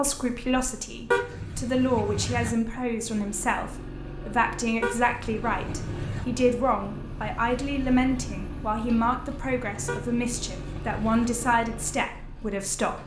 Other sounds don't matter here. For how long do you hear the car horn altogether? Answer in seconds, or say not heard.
4 s.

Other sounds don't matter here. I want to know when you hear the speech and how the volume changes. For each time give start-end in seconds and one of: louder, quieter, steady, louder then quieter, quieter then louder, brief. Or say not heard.
0.0-13.0 steady.